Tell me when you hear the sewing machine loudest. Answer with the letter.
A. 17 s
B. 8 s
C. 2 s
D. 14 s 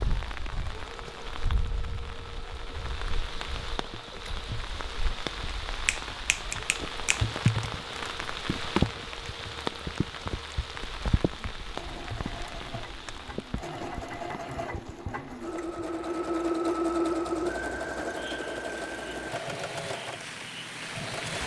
A.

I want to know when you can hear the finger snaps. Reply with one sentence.
You can hear the finger snaps from 5.8 to 7.5 s.